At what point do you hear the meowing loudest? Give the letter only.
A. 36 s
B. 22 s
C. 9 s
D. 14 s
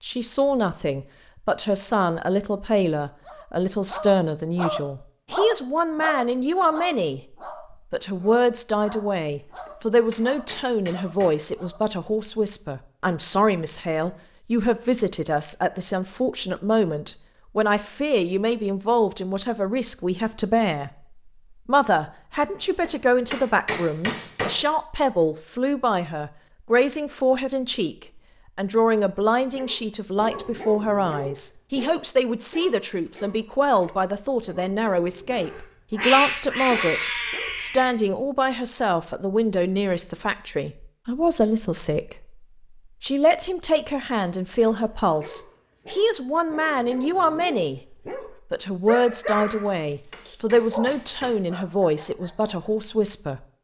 A.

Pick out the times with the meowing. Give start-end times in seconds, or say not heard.
35.3-37.9.